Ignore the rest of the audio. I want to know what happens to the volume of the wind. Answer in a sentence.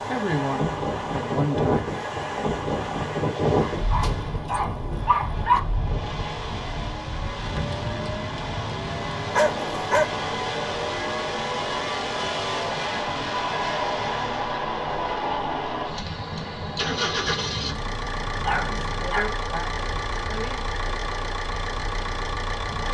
The loudness of the wind goes down.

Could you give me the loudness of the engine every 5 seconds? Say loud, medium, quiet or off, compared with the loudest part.
medium, medium, loud, loud, loud.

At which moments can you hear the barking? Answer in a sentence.
The barking can be heard from 3.6 to 5.6 s, from 9.2 to 10.2 s and from 18.3 to 19.4 s.